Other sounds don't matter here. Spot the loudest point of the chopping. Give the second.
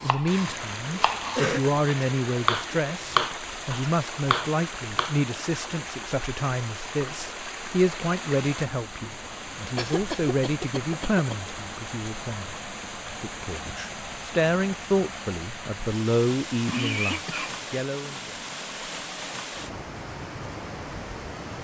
3 s.